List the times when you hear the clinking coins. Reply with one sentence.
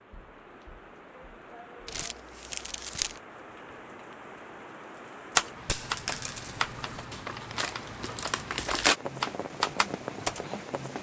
You can hear the clinking coins from 5.7 to 7.0 s.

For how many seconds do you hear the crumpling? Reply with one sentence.
The crumpling can be heard for 3 seconds in total.